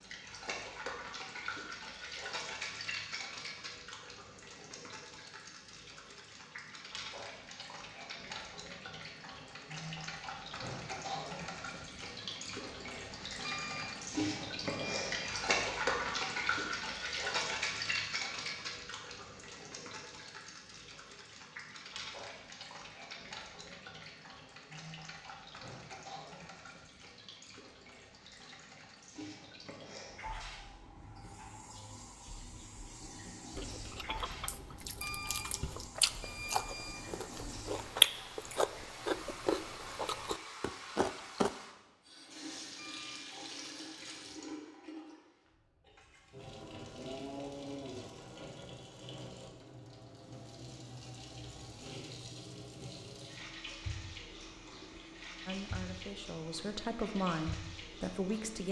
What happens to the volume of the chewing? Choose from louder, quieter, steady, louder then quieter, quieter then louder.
louder then quieter.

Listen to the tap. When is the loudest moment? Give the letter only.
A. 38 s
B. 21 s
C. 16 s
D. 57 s
C.